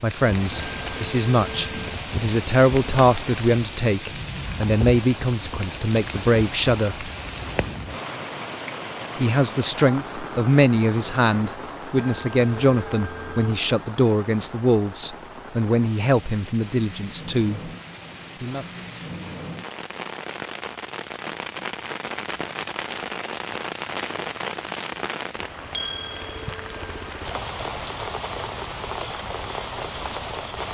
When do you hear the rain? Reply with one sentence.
You can hear the rain from 0.0 to 30.7 s.